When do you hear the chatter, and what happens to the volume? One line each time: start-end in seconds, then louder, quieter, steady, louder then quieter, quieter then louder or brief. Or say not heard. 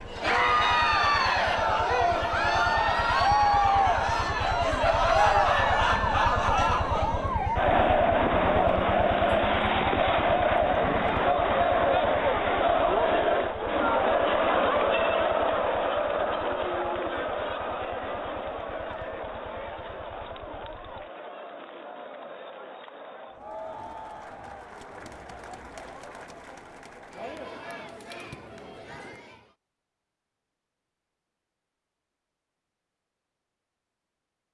0.1-29.6 quieter.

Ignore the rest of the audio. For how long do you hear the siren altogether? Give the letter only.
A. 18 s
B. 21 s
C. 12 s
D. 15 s
B.